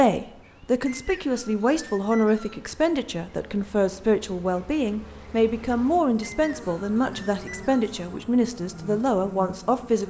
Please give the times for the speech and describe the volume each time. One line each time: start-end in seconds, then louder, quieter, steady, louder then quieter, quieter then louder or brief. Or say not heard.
0.0-10.0 steady.